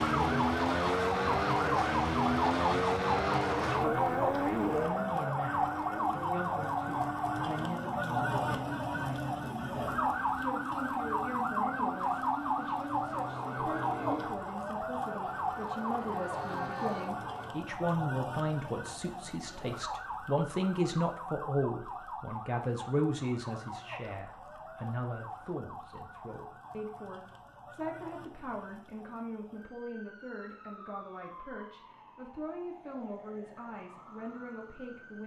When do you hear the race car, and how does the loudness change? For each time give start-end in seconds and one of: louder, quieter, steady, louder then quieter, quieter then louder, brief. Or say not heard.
0.0-17.6 quieter.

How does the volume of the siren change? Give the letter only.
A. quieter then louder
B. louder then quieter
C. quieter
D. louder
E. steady
C.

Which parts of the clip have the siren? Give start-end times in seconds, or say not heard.
0.0-35.2.